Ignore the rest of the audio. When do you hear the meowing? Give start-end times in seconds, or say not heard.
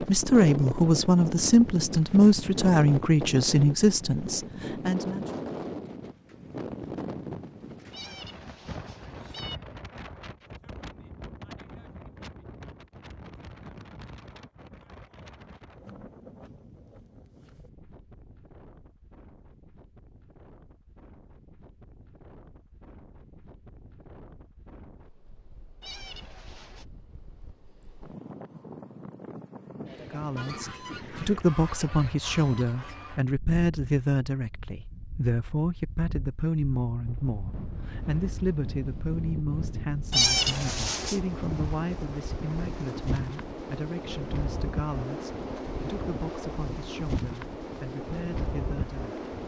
7.9-9.6, 25.8-26.9, 40.1-41.2.